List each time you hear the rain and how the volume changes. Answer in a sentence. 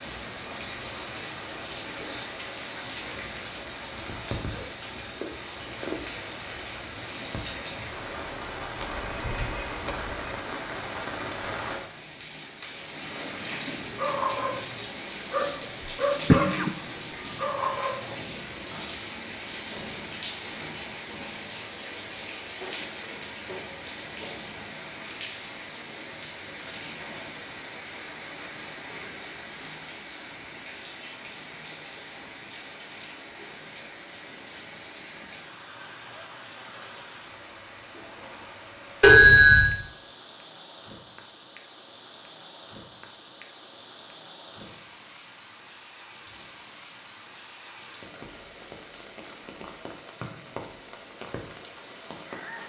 You can hear the rain from 0.0 to 52.6 s, getting quieter.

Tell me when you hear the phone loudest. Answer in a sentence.
The volume of the phone peaks at 39 seconds.